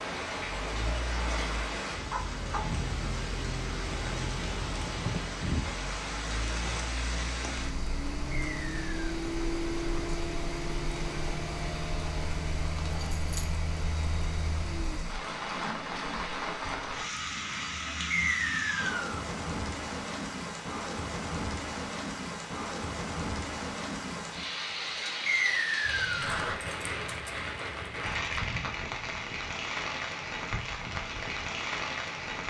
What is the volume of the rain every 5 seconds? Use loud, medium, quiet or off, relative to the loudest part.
loud, loud, medium, loud, loud, loud, loud.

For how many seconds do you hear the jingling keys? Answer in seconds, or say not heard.
4 s.